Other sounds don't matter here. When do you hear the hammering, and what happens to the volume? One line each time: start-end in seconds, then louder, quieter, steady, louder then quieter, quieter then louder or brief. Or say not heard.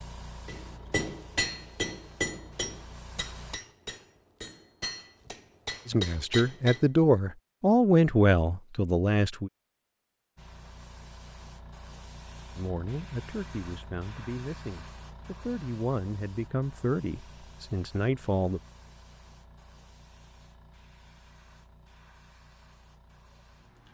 0.5-6.8 quieter then louder.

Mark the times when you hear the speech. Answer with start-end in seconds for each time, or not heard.
5.8-9.5, 12.6-18.6.